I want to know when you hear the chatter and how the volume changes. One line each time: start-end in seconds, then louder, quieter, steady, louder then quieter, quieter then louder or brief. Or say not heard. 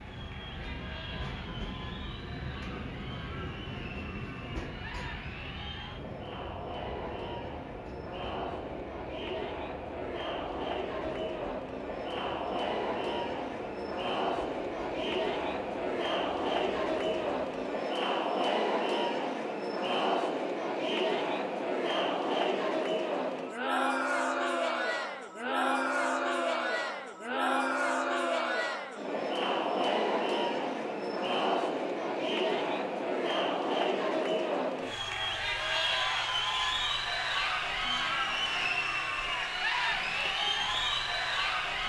0.0-41.8 louder.